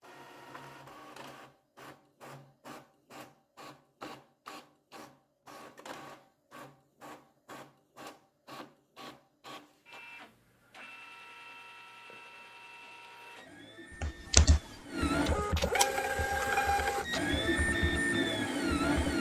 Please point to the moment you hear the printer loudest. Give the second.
16 s.